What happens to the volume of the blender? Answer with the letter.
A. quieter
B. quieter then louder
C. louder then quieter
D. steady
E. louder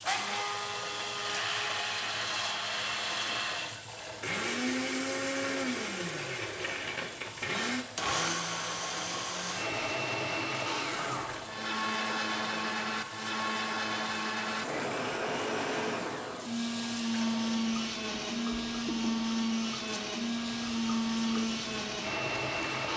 D.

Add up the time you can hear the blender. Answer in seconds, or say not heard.
23 s.